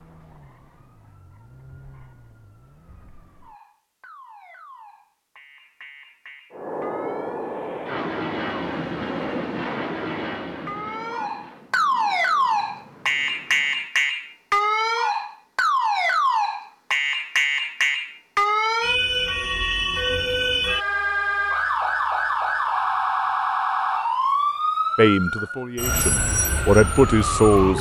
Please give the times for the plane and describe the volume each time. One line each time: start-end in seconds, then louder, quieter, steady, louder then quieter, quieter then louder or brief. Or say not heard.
6.5-13.9 quieter.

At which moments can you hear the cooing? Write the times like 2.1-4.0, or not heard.
not heard.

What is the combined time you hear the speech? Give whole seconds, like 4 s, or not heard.
3 s.